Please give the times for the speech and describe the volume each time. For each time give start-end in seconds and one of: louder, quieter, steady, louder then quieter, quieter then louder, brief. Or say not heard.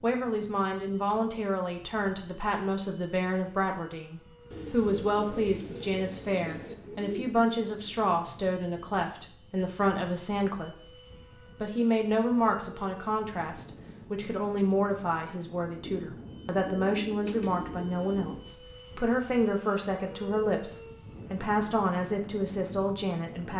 0.0-23.5 steady.